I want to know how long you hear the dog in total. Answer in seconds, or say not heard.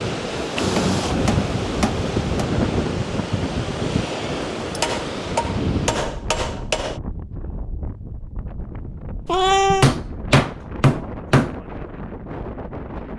not heard.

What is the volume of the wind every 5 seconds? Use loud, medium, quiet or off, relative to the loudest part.
loud, medium, medium.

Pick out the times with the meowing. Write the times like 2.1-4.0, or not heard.
0.6-1.2, 9.2-9.9.